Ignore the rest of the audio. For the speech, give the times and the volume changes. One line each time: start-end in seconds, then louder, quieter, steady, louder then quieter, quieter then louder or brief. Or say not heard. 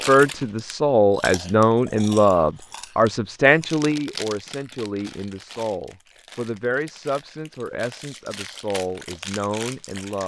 0.1-10.2 quieter.